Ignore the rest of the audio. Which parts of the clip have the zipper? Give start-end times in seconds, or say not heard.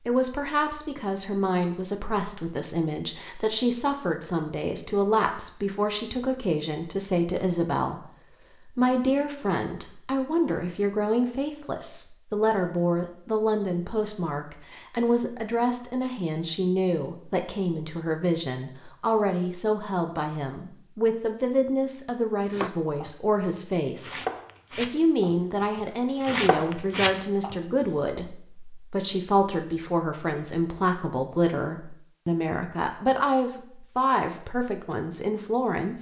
not heard.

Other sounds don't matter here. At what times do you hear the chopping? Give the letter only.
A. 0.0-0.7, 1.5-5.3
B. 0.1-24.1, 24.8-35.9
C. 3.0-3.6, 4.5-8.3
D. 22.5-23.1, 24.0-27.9
D.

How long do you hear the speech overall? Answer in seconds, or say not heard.
35 s.